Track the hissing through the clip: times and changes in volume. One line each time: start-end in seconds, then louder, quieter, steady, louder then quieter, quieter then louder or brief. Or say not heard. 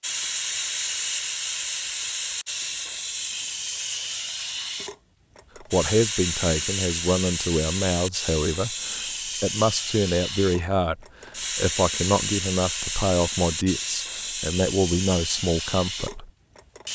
0.0-16.9 steady.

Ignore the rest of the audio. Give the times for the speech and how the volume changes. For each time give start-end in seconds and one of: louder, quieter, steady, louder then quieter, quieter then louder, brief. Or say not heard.
5.6-16.3 steady.